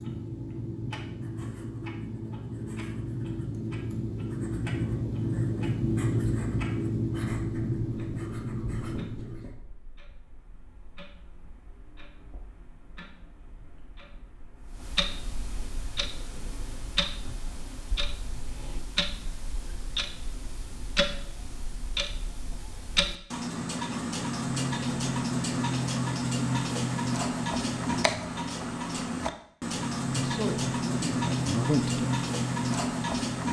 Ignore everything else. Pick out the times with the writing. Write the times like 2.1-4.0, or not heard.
0.0-9.6.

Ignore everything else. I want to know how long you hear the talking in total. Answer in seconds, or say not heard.
2 s.